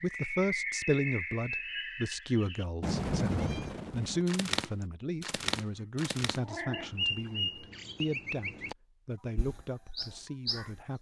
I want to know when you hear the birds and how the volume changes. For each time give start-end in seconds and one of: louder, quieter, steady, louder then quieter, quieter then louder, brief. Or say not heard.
0.0-8.8 steady
9.3-10.9 brief.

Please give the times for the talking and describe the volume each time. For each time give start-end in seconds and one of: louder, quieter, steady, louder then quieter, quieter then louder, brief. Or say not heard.
0.0-10.9 quieter.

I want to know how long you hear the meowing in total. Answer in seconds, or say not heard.
2 s.